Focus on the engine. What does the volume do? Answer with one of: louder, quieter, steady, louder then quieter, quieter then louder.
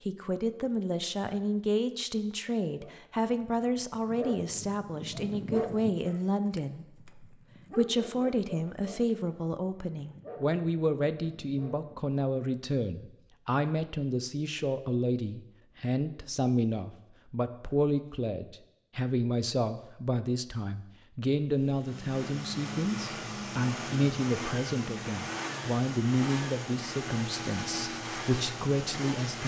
steady.